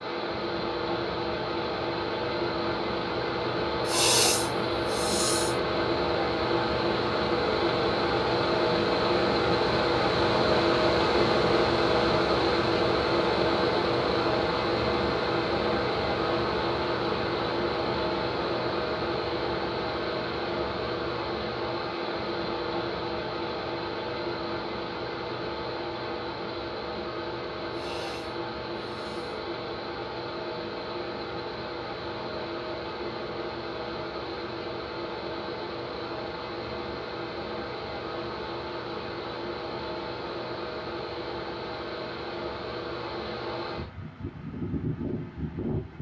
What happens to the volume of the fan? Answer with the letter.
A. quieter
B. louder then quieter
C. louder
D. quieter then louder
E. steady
A.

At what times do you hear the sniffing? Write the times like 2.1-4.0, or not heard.
3.9-5.6, 27.7-29.4.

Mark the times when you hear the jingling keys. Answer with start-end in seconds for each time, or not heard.
not heard.